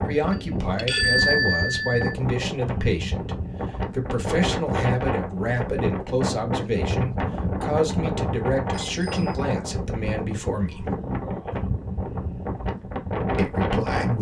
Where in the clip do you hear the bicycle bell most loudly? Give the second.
1 s.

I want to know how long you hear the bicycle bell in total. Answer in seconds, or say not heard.
2 s.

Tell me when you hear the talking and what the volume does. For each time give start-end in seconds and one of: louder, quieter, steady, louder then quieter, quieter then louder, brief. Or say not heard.
0.0-10.9 steady
13.3-14.1 brief.